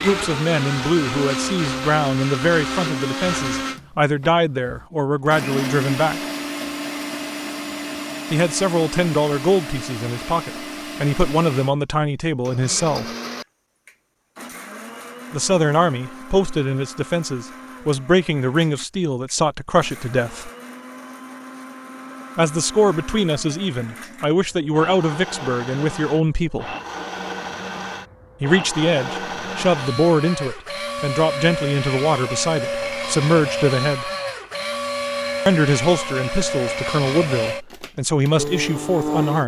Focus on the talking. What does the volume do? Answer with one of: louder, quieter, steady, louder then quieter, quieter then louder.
steady.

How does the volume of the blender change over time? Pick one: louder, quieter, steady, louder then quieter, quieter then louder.
quieter then louder.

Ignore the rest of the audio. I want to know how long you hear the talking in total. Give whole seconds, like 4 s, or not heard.
30 s.